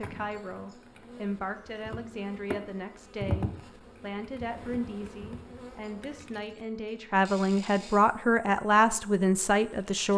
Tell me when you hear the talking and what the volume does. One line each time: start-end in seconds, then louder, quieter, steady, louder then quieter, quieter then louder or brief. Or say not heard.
0.0-10.1 louder.